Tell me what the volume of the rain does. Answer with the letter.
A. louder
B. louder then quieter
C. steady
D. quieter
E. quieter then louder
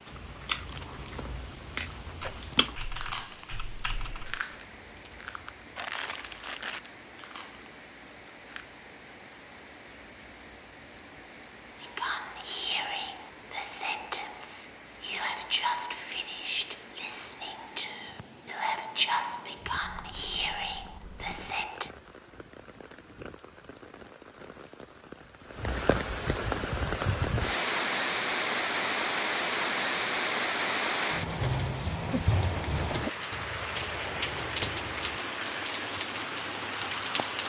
A.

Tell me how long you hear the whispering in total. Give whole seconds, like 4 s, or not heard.
10 s.